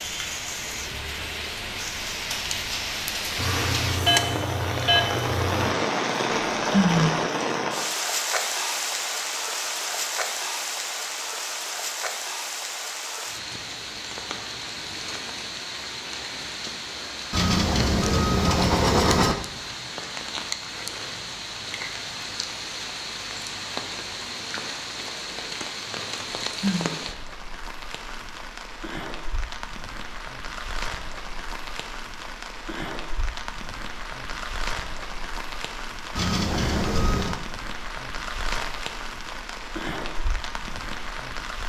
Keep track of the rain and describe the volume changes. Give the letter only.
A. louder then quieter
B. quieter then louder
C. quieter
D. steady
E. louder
C.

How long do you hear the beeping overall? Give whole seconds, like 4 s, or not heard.
6 s.